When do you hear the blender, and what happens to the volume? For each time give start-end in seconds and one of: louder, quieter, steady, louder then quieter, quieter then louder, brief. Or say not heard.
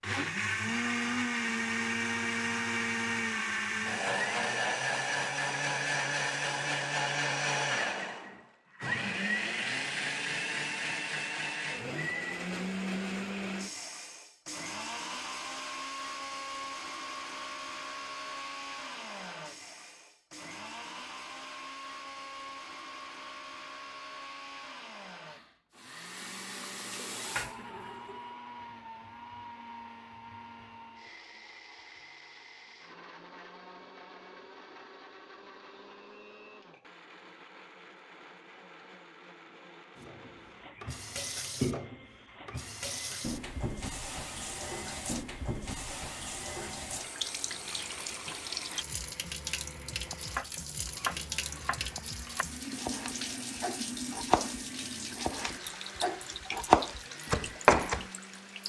0.0-58.6 quieter.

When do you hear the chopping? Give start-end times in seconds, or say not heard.
50.1-58.0.